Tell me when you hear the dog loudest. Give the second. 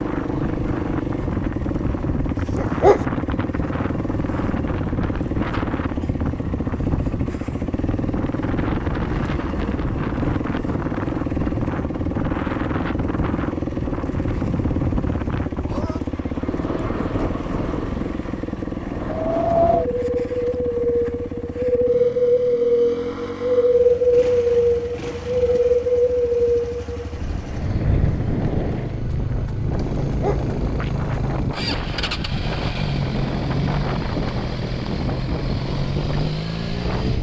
3 s.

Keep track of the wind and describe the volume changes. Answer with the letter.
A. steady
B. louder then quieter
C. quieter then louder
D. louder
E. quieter
B.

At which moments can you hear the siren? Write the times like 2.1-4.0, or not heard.
not heard.